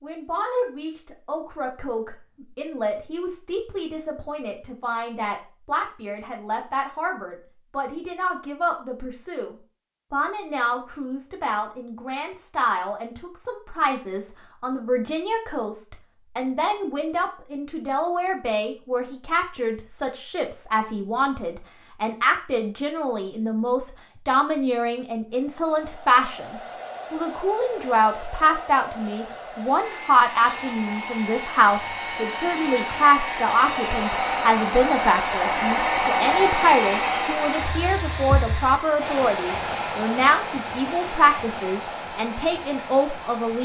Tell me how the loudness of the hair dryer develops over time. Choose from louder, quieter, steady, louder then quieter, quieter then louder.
louder then quieter.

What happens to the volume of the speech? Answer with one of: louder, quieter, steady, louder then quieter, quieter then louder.
louder.